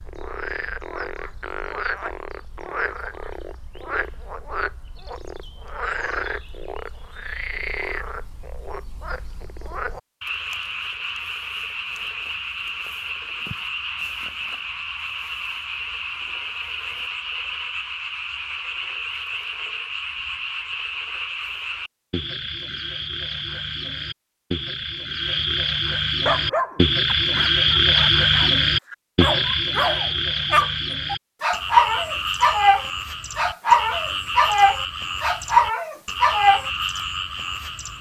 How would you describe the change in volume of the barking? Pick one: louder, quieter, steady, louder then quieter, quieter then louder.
louder.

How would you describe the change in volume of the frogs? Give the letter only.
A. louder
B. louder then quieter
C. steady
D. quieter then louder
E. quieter
B.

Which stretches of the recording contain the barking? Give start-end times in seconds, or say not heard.
26.2-36.7.